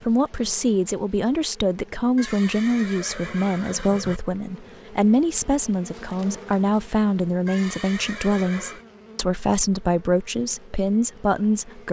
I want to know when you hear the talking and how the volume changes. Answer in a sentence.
You can hear the talking from 0.0 to 11.8 s, at a steady volume.